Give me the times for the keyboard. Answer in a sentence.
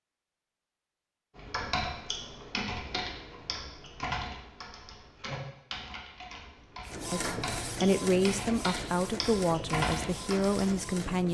You can hear the keyboard from 1.4 to 10.8 s.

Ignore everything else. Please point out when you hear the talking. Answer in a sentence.
You can hear the talking from 7.1 to 11.2 s.